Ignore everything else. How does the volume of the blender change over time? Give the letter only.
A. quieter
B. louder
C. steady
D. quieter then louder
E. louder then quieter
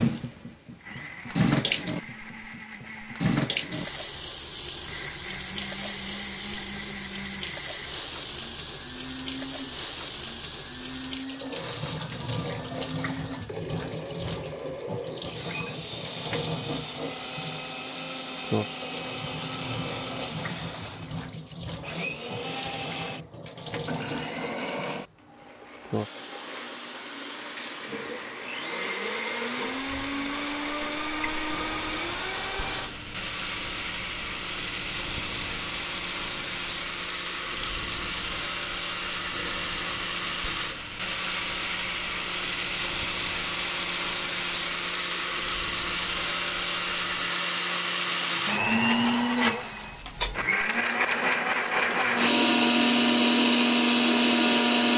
B.